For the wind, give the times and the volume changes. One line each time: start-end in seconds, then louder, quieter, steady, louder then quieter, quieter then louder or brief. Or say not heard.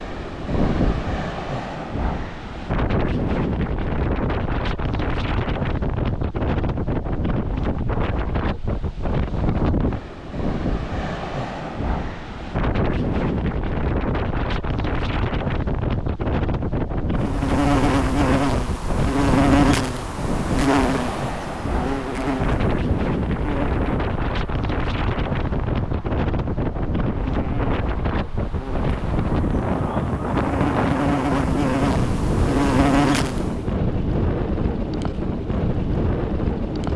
0.0-36.9 steady.